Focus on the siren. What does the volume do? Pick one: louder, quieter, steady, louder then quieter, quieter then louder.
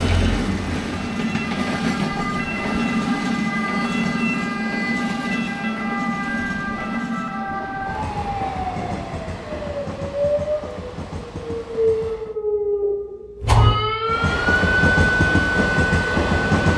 louder.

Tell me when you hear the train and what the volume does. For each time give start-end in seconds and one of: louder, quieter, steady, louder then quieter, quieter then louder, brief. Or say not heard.
0.0-12.3 quieter
14.1-16.7 brief.